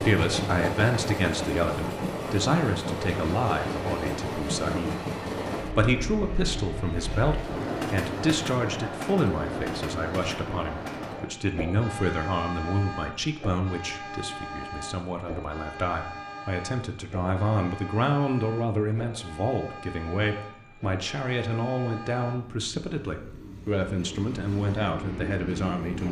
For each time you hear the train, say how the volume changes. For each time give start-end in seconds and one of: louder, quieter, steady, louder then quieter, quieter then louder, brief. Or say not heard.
0.0-26.0 quieter.